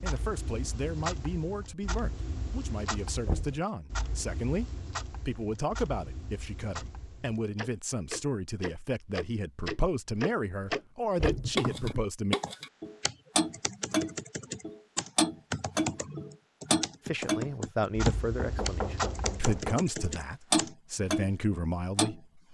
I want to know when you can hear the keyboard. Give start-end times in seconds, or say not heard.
11.2-20.7.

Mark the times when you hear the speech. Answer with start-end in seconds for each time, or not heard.
0.0-12.3, 17.1-22.2.